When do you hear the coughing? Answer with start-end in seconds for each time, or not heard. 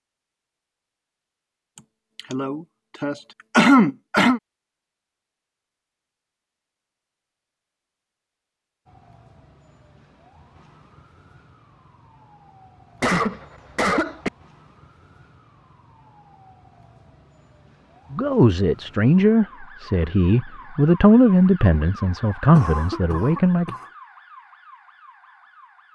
2.3-4.4, 13.0-14.3, 22.5-23.9.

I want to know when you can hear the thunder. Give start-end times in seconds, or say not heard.
not heard.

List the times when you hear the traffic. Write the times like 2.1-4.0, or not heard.
not heard.